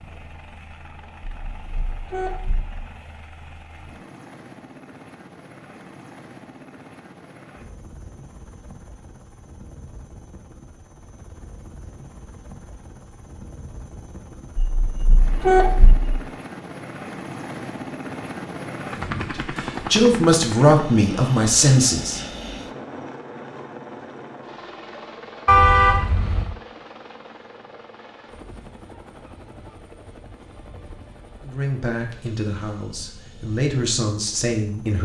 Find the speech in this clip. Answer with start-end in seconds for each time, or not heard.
18.9-22.2, 31.4-35.0.